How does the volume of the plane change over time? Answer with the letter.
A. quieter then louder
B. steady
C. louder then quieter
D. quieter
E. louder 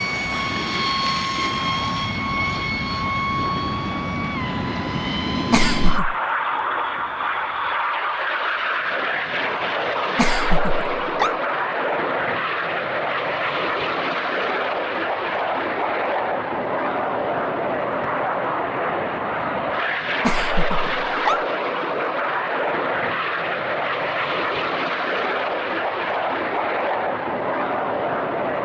B.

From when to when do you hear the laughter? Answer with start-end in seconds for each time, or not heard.
5.5-6.2, 10.2-11.3, 20.2-21.4.